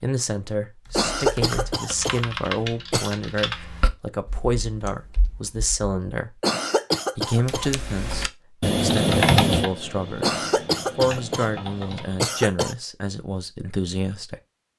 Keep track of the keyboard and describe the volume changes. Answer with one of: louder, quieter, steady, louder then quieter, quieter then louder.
louder then quieter.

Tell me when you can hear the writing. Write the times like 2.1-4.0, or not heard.
not heard.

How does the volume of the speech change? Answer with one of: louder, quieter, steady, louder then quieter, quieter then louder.
steady.